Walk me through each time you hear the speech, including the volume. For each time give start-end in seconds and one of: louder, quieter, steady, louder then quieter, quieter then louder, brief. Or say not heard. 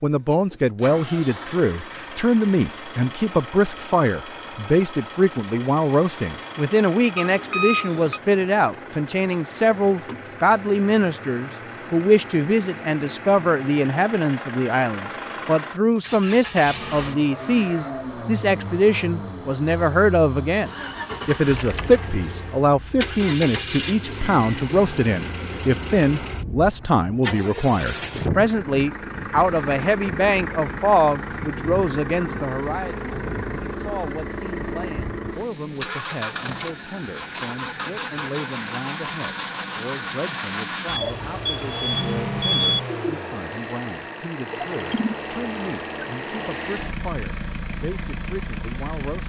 0.0-49.2 quieter.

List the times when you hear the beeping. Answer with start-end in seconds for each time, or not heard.
7.2-8.2, 40.9-42.8.